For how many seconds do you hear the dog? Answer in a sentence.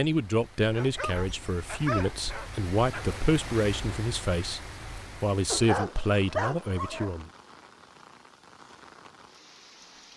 You can hear the dog for 4 seconds altogether.